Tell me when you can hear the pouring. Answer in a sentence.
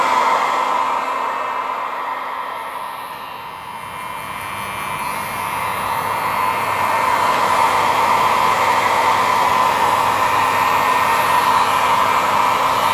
The pouring can't be heard in this clip.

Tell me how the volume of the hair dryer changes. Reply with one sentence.
The loudness of the hair dryer goes down, then up.